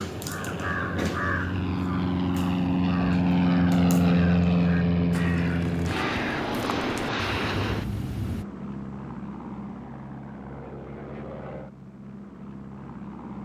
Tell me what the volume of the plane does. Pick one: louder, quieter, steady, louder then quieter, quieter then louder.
louder then quieter.